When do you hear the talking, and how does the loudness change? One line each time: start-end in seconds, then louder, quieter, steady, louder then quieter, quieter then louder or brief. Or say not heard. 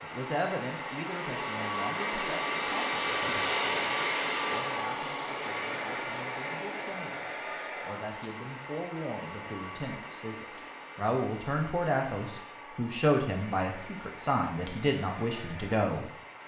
0.0-16.1 quieter then louder.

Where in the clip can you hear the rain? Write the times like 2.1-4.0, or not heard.
not heard.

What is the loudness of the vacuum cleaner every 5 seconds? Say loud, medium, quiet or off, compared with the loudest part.
loud, medium, quiet, quiet.